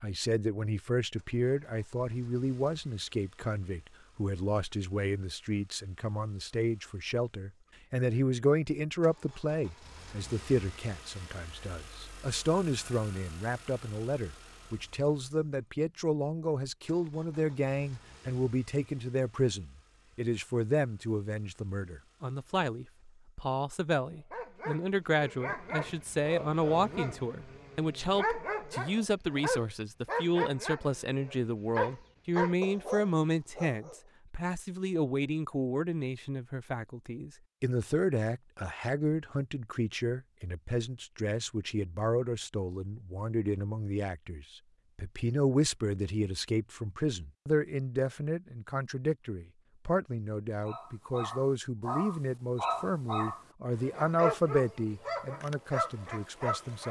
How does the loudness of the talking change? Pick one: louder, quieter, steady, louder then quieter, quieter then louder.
steady.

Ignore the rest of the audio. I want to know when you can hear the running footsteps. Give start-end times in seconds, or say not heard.
not heard.